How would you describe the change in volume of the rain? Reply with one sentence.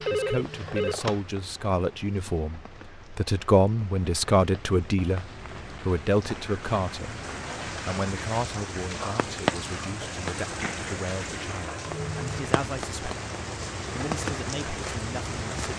The loudness of the rain goes up.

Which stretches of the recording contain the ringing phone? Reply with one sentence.
You can hear the ringing phone from 0.0 to 1.2 s.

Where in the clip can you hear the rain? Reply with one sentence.
The rain can be heard from 0.0 to 15.7 s.